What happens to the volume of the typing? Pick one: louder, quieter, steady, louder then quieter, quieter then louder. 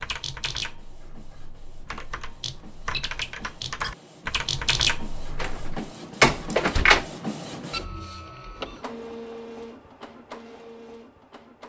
quieter then louder.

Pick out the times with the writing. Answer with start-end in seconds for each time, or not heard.
not heard.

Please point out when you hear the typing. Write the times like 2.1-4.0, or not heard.
0.0-5.8.